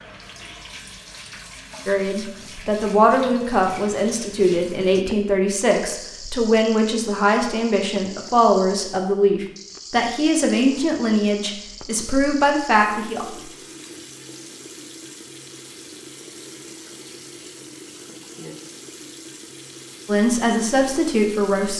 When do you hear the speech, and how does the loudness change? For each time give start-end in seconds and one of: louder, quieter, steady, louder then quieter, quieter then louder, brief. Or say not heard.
1.9-13.2 steady
20.1-21.7 brief.